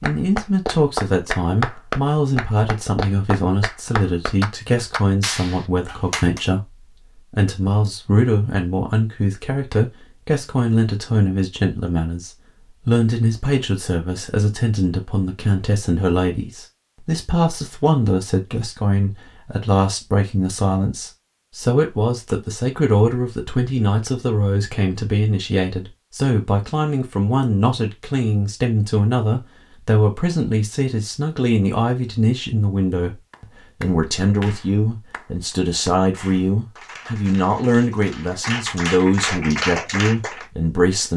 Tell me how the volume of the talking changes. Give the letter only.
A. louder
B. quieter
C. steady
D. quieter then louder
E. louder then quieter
C.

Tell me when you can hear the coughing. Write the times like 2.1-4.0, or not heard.
not heard.